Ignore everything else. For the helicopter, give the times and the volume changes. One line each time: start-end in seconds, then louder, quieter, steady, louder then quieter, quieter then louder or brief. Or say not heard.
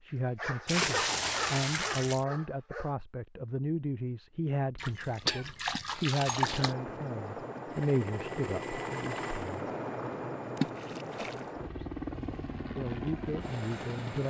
6.3-14.2 steady.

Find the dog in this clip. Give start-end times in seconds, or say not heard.
0.1-3.0.